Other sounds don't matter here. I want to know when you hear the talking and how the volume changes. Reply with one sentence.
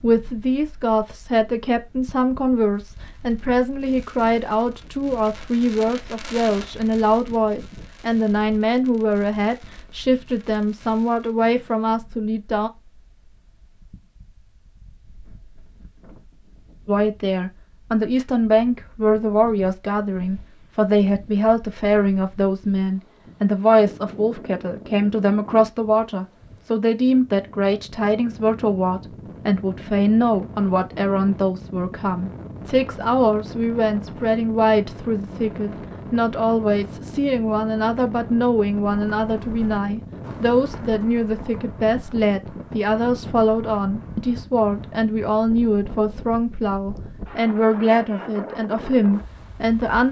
You can hear the talking from 0.0 to 12.7 s, at a steady volume; and from 16.9 to 50.0 s, at a steady volume.